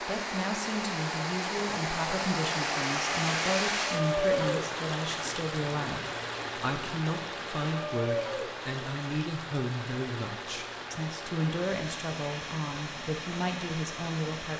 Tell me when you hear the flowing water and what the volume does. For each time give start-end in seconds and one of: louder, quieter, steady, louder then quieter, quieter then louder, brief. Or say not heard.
0.0-14.5 quieter.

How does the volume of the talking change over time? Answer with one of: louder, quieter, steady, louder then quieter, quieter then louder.
steady.